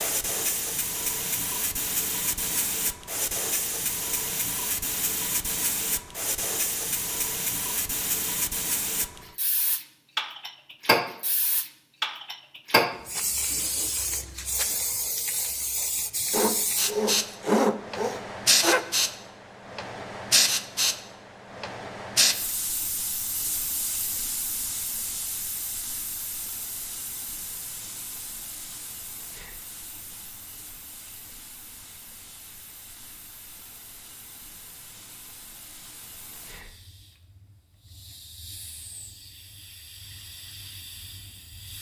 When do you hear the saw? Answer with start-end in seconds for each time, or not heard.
16.3-18.9.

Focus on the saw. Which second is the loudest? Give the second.
18 s.